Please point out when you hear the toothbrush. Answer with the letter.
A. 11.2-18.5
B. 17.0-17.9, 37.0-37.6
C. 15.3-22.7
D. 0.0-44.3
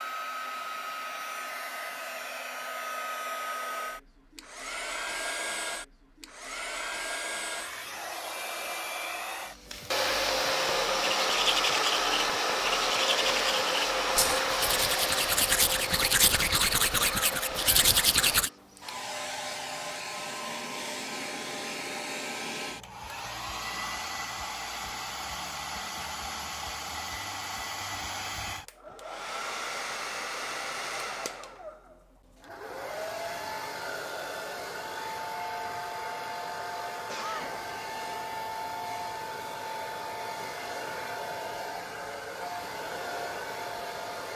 A.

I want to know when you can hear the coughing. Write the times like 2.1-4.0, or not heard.
17.0-17.9, 37.0-37.6.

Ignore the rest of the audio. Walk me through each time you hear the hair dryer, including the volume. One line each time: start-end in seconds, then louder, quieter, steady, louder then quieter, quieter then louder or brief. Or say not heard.
0.0-44.3 louder then quieter.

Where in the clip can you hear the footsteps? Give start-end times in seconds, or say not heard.
not heard.